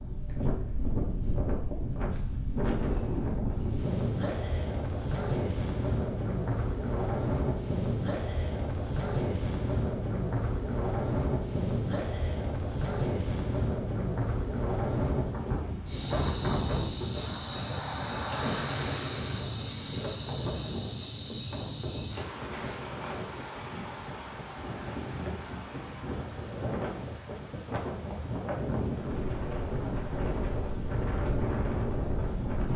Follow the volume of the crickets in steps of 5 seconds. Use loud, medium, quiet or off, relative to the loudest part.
off, off, off, loud, loud, quiet, quiet.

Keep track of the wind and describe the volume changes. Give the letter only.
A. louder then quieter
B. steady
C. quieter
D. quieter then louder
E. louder
D.